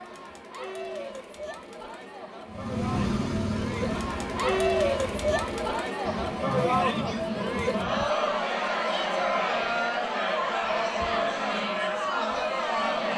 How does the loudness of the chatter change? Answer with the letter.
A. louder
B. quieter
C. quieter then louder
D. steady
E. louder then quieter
A.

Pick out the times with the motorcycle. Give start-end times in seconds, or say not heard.
2.5-5.8.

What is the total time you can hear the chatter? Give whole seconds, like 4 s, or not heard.
13 s.